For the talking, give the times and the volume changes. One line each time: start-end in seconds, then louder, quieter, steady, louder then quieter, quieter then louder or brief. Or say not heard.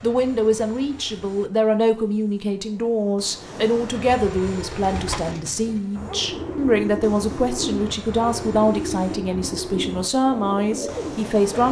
0.0-11.6 steady.